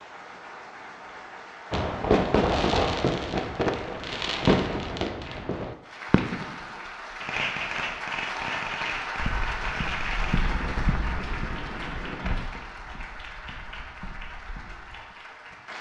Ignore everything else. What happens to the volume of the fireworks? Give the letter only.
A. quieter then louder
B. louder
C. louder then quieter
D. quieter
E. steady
D.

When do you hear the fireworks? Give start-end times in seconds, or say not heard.
1.7-12.4.